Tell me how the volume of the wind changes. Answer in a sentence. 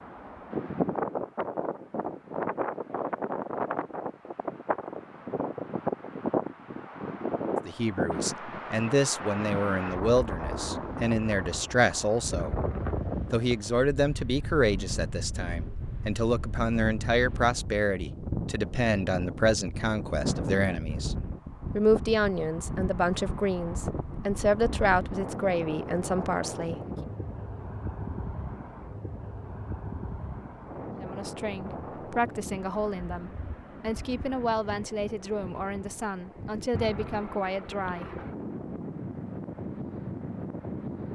The volume of the wind goes down.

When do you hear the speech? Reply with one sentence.
The speech can be heard from 7.7 to 12.6 s, from 13.3 to 21.1 s, from 21.8 to 26.8 s and from 31.0 to 38.2 s.